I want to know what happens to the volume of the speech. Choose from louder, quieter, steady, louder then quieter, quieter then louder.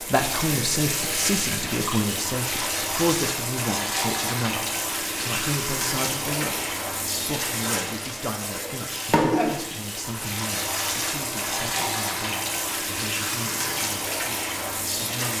quieter.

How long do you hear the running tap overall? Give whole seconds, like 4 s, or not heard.
15 s.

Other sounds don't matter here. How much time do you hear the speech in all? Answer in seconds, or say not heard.
15 s.